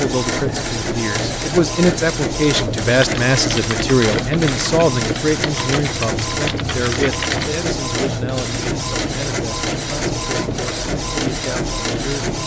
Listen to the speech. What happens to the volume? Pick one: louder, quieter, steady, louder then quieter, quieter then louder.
quieter.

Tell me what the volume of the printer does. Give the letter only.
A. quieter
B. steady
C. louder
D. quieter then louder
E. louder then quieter
B.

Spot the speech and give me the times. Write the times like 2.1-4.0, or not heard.
0.0-12.3.